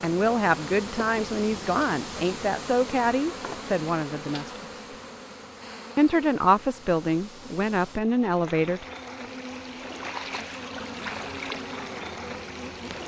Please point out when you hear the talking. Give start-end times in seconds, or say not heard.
0.0-4.7, 6.0-8.8.